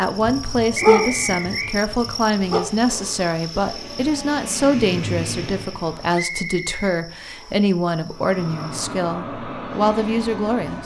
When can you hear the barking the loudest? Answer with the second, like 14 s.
1 s.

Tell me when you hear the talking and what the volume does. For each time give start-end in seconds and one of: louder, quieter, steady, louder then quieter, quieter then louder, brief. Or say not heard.
0.0-10.8 steady.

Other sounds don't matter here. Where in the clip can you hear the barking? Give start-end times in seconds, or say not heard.
0.0-2.6.